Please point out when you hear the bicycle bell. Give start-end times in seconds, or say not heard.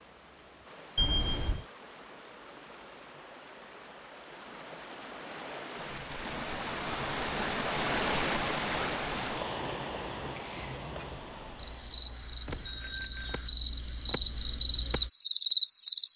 0.9-1.6, 12.7-13.5.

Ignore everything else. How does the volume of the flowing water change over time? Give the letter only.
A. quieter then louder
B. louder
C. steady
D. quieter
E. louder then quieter
E.